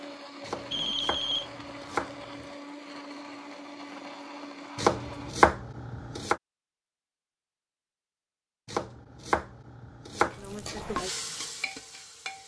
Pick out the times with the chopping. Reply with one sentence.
The chopping can be heard from 0.5 to 2.5 s, from 4.8 to 6.3 s and from 8.7 to 10.8 s.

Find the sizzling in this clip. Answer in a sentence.
The sizzling can be heard from 10.2 to 12.4 s.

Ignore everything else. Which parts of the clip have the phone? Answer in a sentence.
The phone can be heard from 0.7 to 1.5 s.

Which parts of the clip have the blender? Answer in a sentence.
The blender can be heard from 0.0 to 5.3 s.